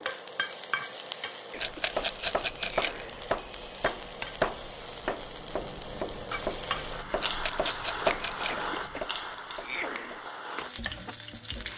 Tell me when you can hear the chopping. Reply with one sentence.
The chopping can be heard from 1.6 to 11.2 s.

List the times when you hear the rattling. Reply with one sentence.
You can hear the rattling from 1.6 to 3.0 s and from 7.2 to 8.7 s.